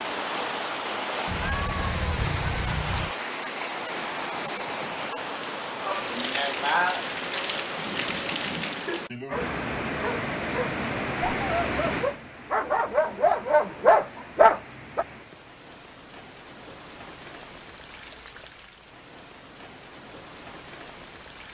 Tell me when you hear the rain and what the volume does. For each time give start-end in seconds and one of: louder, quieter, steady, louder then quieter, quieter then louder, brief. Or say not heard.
0.0-21.4 quieter.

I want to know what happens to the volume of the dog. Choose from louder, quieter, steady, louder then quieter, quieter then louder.
louder.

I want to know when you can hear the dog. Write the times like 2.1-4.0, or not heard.
8.9-15.1.